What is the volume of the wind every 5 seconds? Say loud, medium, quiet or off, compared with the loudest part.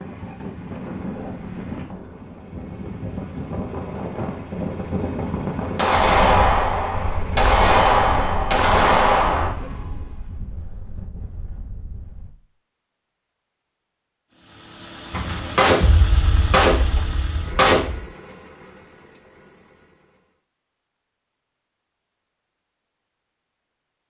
loud, loud, quiet, off, off.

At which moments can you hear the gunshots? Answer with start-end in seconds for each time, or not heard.
5.8-9.5, 15.1-18.1.